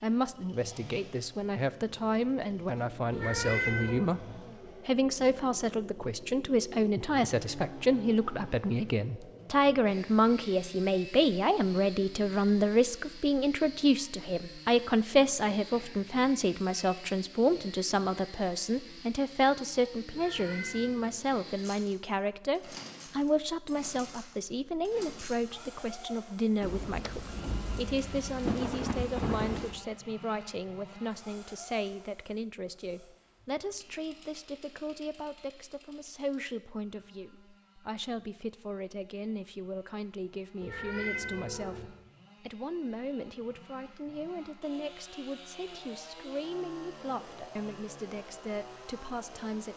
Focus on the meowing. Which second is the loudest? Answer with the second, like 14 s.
4 s.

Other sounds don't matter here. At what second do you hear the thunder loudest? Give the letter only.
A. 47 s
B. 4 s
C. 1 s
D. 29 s
D.